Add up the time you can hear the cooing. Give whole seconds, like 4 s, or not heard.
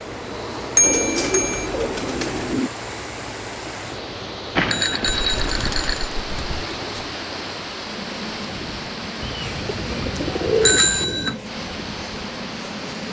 6 s.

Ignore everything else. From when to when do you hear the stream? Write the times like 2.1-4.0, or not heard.
0.0-13.0.